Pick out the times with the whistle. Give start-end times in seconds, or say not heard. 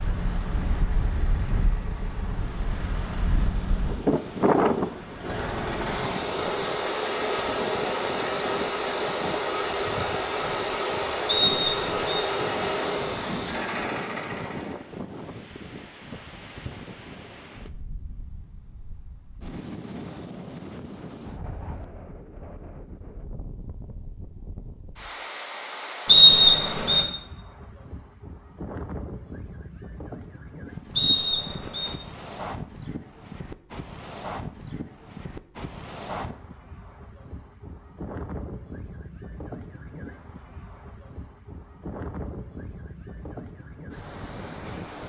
11.2-12.2, 26.1-27.1, 30.9-31.9.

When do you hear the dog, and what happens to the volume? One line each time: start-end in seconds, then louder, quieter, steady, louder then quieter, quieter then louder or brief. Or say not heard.
not heard.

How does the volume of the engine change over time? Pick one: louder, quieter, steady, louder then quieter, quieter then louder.
louder.